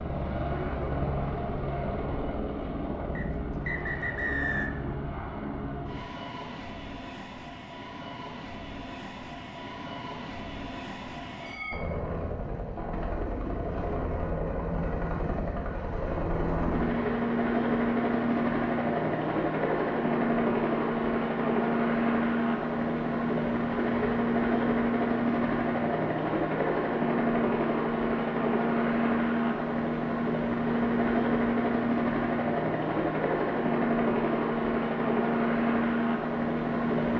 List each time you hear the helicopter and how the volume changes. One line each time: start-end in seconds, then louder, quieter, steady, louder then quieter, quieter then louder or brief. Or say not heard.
0.0-37.1 louder.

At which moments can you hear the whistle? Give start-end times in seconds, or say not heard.
3.1-4.7.